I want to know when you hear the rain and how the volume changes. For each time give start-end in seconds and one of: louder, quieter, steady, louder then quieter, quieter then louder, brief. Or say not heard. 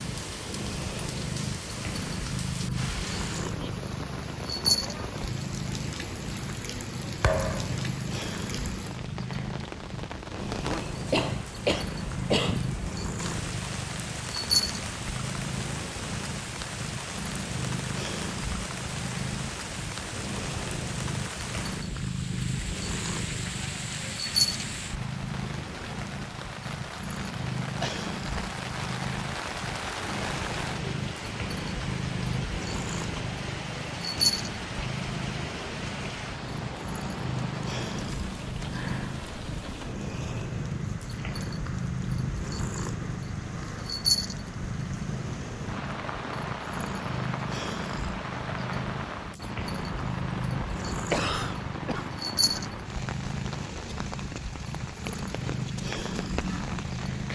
0.0-57.3 steady.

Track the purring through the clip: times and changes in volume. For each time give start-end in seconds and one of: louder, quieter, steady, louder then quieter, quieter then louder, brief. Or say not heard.
0.0-57.3 steady.